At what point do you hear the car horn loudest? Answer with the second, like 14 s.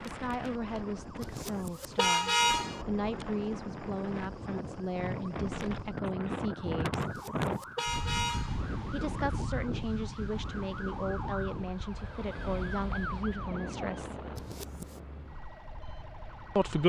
2 s.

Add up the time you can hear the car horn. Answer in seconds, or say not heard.
4 s.